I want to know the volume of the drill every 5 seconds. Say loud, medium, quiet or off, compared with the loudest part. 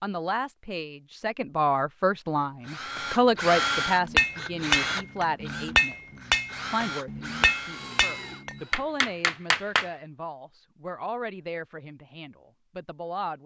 loud, medium, off.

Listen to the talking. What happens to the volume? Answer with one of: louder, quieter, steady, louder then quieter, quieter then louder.
quieter.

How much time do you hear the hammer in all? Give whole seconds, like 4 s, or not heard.
6 s.